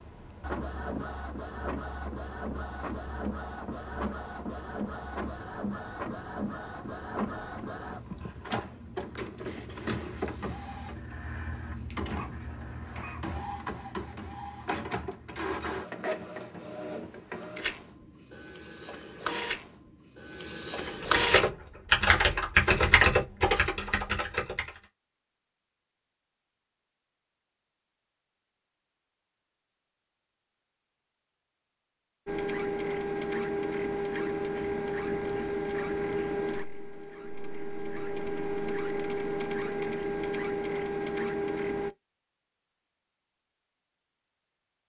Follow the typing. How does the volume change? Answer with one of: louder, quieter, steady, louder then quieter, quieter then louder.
louder then quieter.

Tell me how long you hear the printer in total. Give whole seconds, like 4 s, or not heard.
31 s.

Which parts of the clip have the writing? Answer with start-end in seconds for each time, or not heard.
not heard.